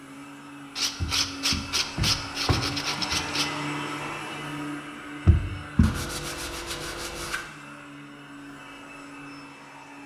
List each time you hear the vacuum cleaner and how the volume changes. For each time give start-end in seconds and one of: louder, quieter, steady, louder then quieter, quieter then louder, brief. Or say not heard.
0.0-10.0 louder then quieter.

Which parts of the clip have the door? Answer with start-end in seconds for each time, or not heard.
1.0-3.2, 5.2-5.9.